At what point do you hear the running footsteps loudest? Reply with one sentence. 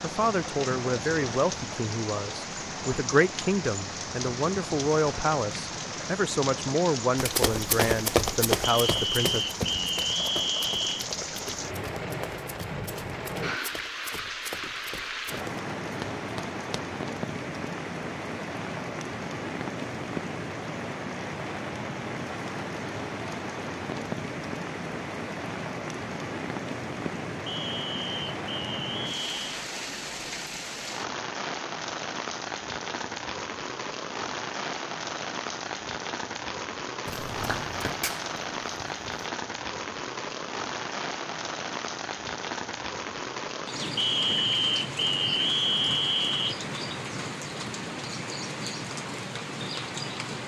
The loudest moment of the running footsteps is at 8 seconds.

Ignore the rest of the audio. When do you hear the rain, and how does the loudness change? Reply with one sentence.
You can hear the rain from 0.0 to 50.4 s, at a steady volume.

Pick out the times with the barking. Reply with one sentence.
The barking can't be heard in this clip.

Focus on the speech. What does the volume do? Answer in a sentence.
The volume of the speech stays about the same.